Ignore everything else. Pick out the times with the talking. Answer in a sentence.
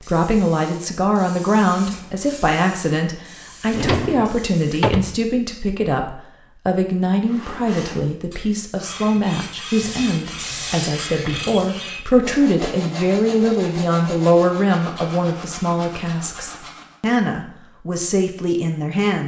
The talking can be heard from 0.0 to 19.2 s.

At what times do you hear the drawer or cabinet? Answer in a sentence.
You can hear the drawer or cabinet from 3.6 to 5.2 s.